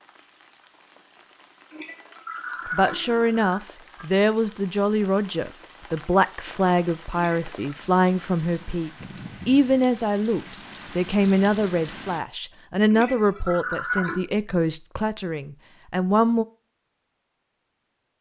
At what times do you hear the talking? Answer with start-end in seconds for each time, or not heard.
2.7-16.4.